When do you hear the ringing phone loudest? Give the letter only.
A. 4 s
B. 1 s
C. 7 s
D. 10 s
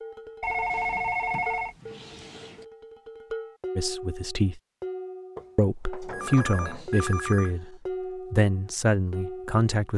B.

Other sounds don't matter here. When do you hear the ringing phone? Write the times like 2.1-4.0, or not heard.
0.4-1.8, 6.1-7.5.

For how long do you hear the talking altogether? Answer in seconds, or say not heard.
5 s.